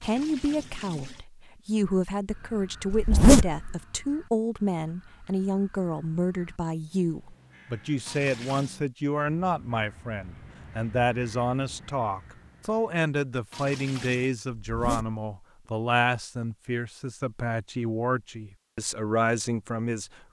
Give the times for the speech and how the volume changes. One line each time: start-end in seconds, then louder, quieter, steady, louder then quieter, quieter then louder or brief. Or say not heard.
0.0-20.2 steady.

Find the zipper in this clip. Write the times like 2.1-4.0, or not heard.
2.9-3.8, 14.6-15.2.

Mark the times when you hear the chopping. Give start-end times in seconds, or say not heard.
not heard.